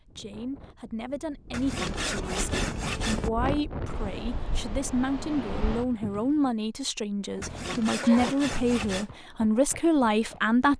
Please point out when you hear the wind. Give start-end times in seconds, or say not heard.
0.0-6.5.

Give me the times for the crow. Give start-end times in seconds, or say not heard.
not heard.